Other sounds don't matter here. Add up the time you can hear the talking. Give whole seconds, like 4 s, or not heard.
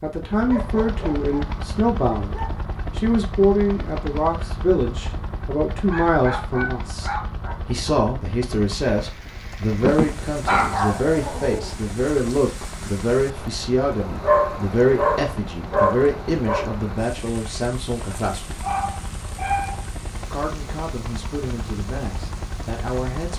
22 s.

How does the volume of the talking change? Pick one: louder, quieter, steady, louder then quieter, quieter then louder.
quieter.